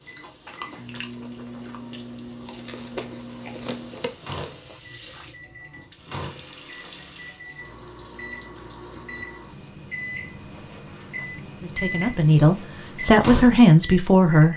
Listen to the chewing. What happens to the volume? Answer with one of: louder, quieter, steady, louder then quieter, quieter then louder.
quieter then louder.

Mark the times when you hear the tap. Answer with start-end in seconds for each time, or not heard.
0.0-9.8.